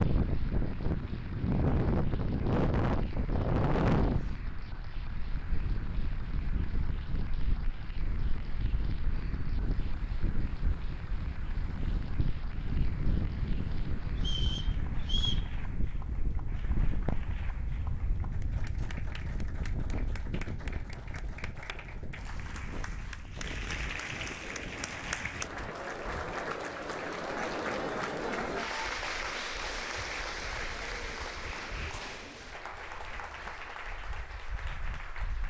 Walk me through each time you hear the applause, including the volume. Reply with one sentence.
The applause can be heard from 0.0 to 35.4 s, getting louder.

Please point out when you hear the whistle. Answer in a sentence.
You can hear the whistle from 14.2 to 15.5 s.